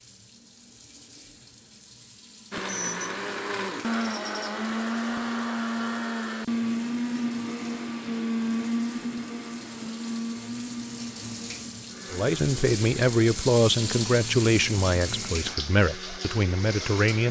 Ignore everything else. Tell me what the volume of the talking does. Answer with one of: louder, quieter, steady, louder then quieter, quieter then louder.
quieter.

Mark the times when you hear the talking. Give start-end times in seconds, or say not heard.
12.1-17.2.